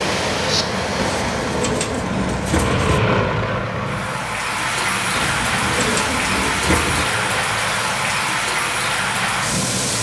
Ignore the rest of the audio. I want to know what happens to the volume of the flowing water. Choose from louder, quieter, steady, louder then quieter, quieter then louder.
quieter then louder.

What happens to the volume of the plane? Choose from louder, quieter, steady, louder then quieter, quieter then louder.
louder then quieter.